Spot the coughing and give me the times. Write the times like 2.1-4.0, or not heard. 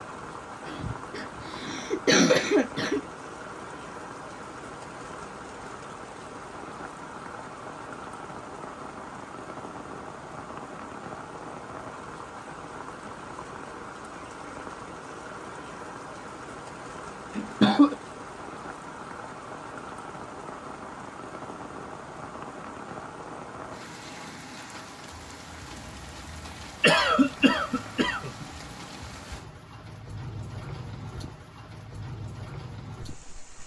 0.7-3.0, 17.4-17.9, 26.8-28.4.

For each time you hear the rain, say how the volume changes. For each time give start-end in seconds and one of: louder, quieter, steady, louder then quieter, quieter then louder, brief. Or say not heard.
0.0-33.6 steady.